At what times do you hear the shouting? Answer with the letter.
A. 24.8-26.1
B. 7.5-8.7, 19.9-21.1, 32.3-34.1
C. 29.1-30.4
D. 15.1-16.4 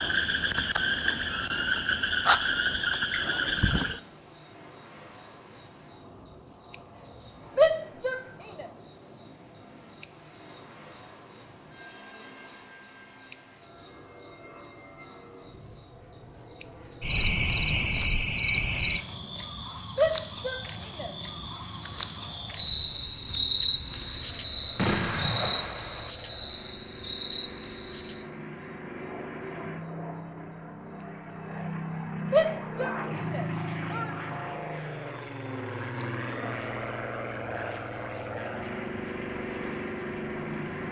B.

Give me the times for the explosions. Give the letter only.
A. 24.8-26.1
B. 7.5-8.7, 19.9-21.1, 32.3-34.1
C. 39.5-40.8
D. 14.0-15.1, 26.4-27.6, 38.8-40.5
A.